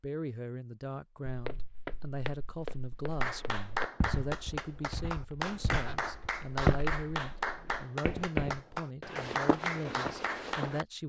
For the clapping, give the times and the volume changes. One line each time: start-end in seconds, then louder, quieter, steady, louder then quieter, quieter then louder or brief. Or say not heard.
3.1-10.8 steady.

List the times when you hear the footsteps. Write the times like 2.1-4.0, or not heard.
1.2-10.8.